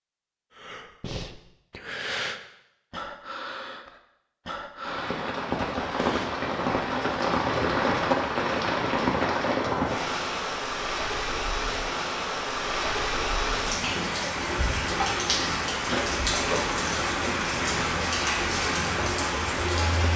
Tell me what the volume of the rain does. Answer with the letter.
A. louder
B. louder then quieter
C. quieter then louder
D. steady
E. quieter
D.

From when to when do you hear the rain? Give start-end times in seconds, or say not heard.
4.8-20.1.